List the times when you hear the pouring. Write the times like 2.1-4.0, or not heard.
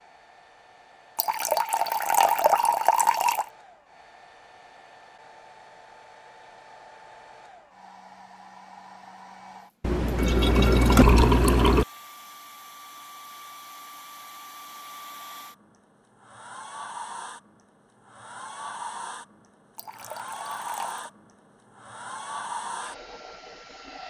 1.1-3.5, 9.8-11.8, 19.8-21.1.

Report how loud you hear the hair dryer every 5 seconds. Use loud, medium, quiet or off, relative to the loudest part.
quiet, medium, medium, loud, loud.